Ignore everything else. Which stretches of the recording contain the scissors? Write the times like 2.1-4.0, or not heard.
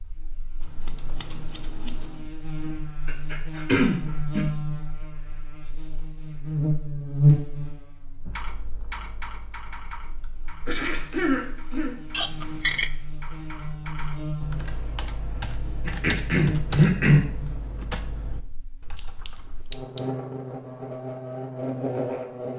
0.6-2.3, 12.1-12.9, 18.9-20.0.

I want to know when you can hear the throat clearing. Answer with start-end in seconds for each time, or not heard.
3.0-4.5, 10.7-11.9, 15.8-17.2.